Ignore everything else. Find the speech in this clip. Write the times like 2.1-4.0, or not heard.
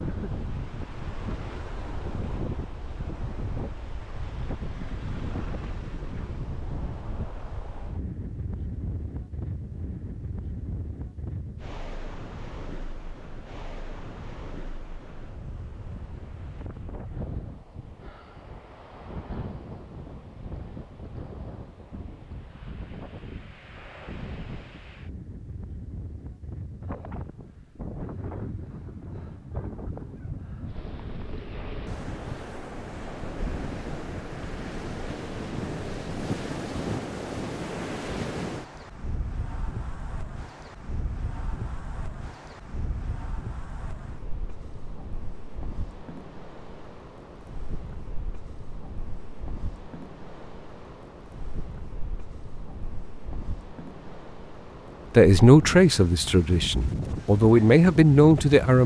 55.1-58.8.